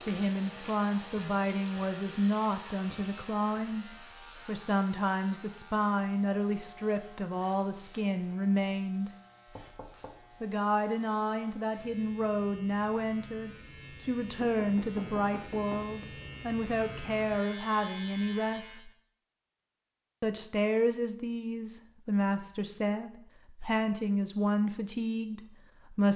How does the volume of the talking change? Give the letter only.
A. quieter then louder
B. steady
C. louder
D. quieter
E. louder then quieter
B.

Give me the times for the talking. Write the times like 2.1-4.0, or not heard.
0.1-9.1, 10.4-18.9, 20.2-26.1.